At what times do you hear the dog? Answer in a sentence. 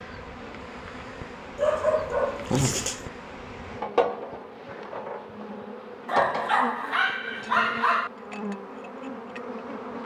The dog can be heard from 1.6 to 3.0 s and from 6.0 to 8.1 s.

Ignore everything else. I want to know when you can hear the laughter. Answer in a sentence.
You can't hear the laughter here.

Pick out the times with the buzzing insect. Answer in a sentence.
You can hear the buzzing insect from 0.0 to 10.0 s.